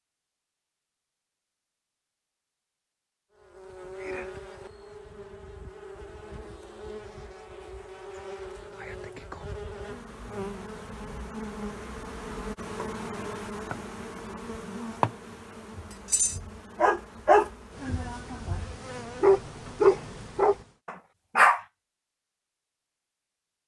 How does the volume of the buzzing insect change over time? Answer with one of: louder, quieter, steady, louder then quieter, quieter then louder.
louder then quieter.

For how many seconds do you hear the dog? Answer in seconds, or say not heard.
6 s.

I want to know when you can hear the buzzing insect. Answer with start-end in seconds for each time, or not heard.
3.4-20.8.